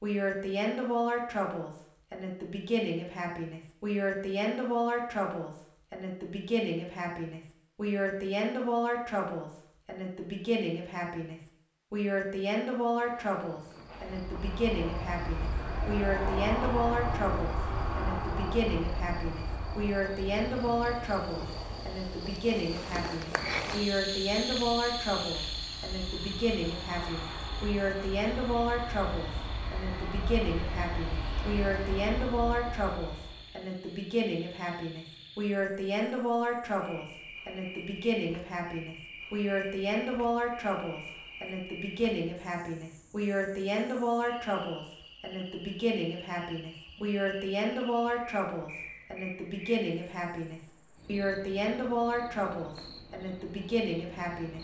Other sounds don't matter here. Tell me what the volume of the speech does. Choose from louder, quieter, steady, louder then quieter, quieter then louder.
steady.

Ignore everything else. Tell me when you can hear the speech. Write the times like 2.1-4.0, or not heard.
0.0-54.5.